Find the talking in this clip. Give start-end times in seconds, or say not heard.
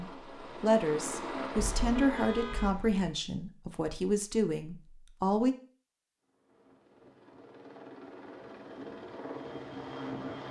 0.0-5.5.